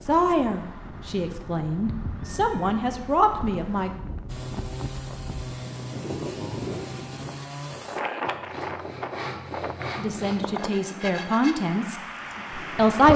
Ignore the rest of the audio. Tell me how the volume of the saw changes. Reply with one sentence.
The loudness of the saw stays about the same.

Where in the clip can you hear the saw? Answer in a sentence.
You can hear the saw from 4.2 to 11.7 s.